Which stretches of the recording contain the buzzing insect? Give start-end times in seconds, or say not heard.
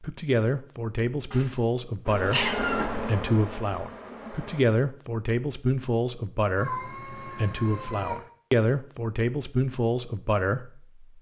2.0-4.7.